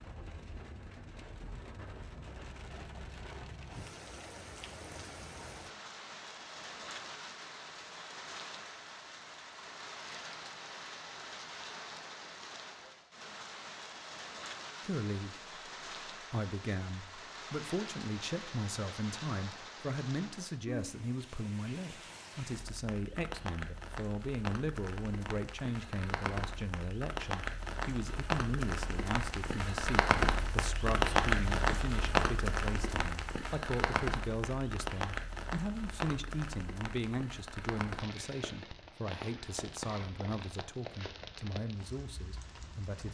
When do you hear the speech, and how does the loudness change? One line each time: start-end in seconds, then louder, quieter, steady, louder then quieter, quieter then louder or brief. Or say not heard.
14.8-43.0 steady.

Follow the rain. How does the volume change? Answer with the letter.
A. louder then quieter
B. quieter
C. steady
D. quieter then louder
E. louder
A.